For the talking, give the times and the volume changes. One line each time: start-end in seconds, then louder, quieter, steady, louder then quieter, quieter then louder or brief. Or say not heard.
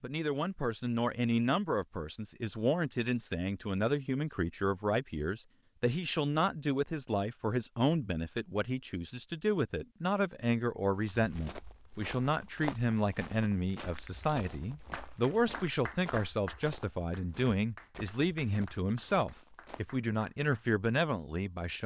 0.0-21.8 steady.